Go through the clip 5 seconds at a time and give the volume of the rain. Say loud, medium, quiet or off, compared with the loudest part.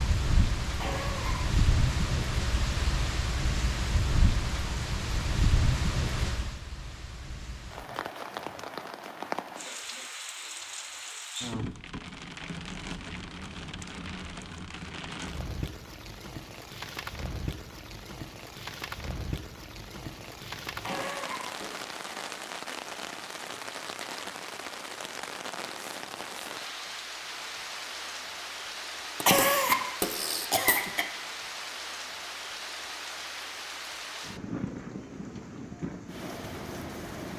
loud, loud, medium, medium, medium, medium, medium, medium.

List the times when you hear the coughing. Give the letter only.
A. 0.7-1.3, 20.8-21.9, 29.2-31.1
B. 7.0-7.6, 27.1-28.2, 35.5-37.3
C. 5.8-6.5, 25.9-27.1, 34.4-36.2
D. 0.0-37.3
A.